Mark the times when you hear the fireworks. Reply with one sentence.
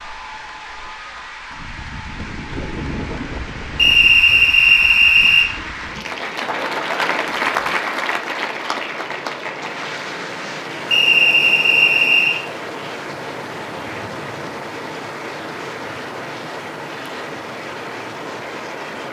The fireworks can't be heard in this clip.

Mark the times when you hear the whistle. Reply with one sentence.
You can hear the whistle from 3.8 to 5.5 s and from 10.9 to 12.4 s.